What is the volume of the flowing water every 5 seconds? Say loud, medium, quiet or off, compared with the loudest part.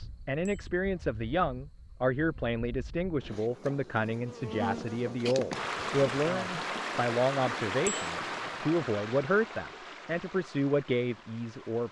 off, loud, quiet.